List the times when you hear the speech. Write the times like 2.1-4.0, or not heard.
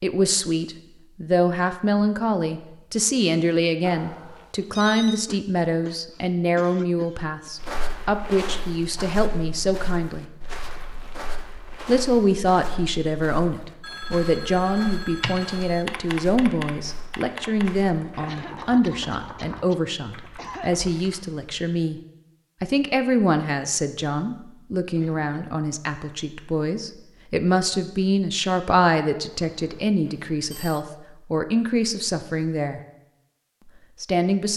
0.0-10.2, 11.8-22.0, 22.6-32.8, 34.0-34.5.